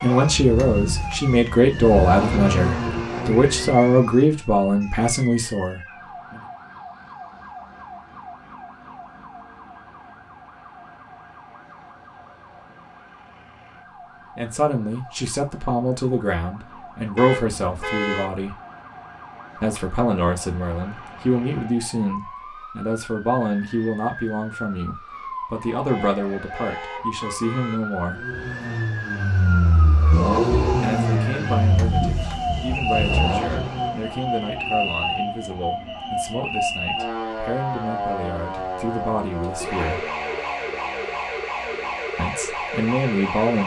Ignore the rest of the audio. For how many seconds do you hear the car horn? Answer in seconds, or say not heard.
3 s.